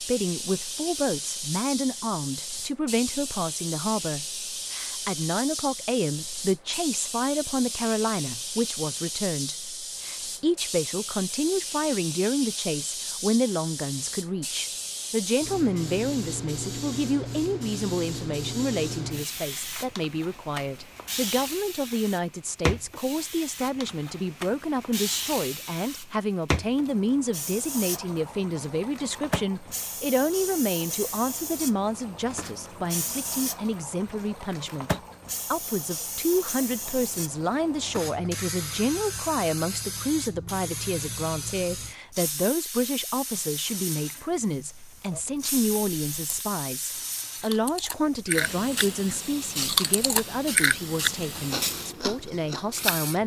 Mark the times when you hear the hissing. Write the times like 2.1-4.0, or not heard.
0.0-53.2.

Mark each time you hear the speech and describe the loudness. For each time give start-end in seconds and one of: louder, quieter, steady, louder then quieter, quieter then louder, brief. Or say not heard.
0.0-53.2 steady.